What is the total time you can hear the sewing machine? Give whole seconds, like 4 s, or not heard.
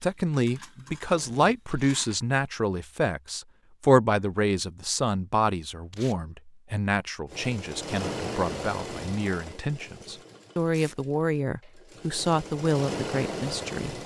9 s.